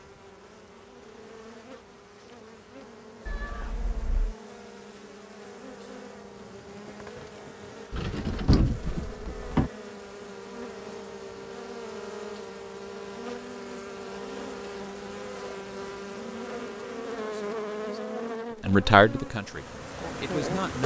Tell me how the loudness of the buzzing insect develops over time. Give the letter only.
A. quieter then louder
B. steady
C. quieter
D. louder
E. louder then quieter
D.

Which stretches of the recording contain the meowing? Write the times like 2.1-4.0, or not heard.
3.2-4.3.